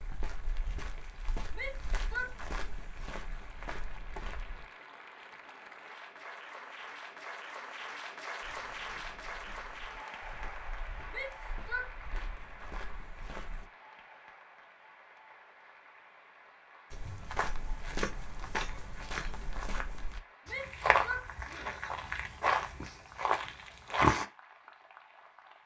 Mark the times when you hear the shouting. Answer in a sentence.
The shouting can be heard from 1.5 to 2.6 s, from 11.1 to 12.2 s and from 20.4 to 21.9 s.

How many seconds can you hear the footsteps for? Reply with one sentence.
You can hear the footsteps for 17 seconds altogether.